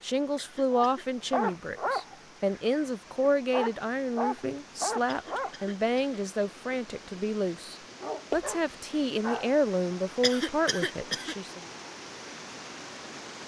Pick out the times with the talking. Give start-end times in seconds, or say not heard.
0.0-11.6.